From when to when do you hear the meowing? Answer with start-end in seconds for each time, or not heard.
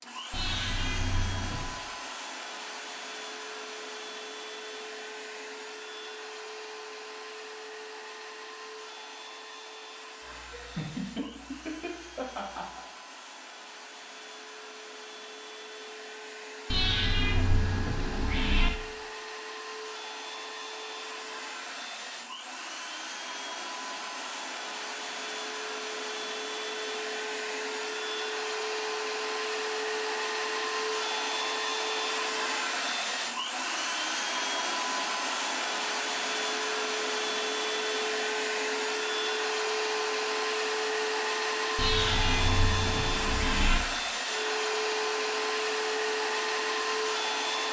0.3-1.8, 16.7-18.7, 41.8-43.8.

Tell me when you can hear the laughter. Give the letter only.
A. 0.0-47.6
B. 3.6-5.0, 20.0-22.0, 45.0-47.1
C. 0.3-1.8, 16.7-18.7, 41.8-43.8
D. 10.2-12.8
D.